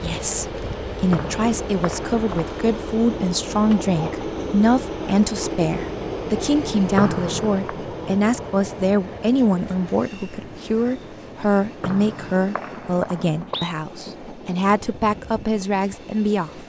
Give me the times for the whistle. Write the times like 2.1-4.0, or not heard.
1.1-2.5, 7.0-7.7, 11.8-13.8.